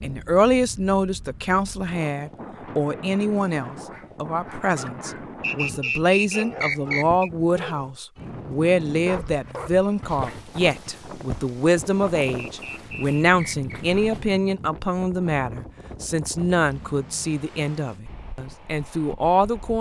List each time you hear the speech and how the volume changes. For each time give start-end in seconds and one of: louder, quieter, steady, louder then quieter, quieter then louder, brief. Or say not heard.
0.0-19.7 steady.